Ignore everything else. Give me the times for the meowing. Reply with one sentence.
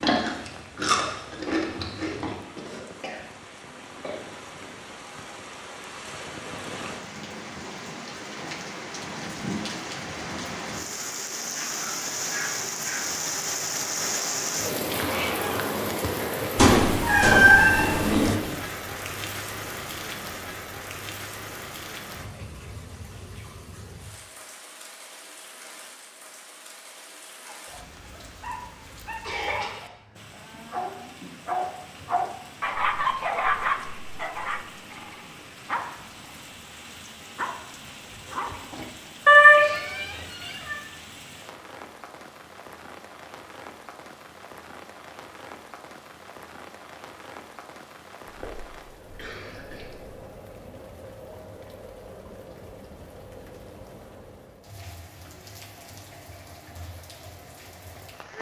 The meowing can be heard from 16.6 to 18.4 s and from 39.2 to 40.8 s.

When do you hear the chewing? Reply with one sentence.
You can hear the chewing from 0.0 to 2.4 s.